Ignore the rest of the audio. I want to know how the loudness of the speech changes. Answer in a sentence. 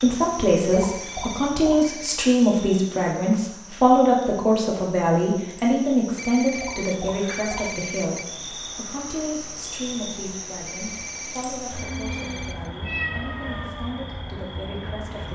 The volume of the speech goes down.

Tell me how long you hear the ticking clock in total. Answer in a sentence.
You can't hear the ticking clock here.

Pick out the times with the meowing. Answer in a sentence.
You can hear the meowing from 11.8 to 13.9 s.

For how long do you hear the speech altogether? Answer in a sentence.
You can hear the speech for 15 seconds altogether.